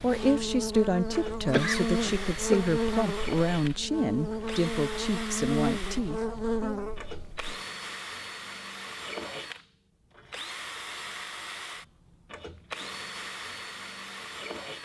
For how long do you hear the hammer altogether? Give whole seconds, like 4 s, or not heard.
not heard.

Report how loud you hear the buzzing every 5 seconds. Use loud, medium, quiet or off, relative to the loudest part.
loud, loud, off.